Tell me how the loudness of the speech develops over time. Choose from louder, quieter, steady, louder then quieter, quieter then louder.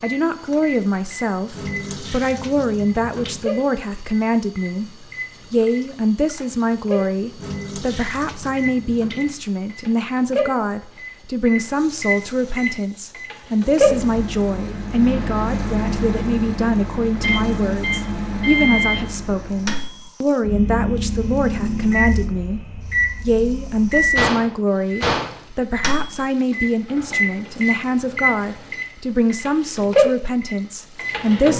steady.